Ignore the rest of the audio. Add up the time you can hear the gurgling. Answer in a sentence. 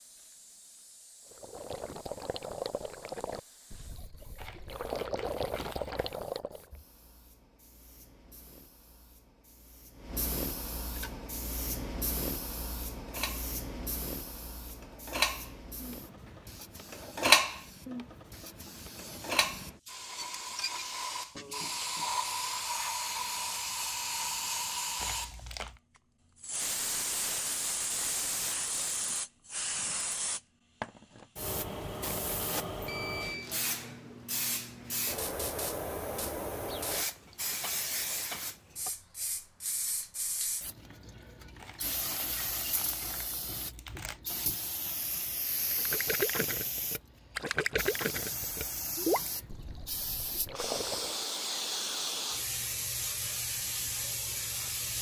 You can hear the gurgling for 11 seconds altogether.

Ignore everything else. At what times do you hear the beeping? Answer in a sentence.
You can hear the beeping from 32.9 to 33.5 s.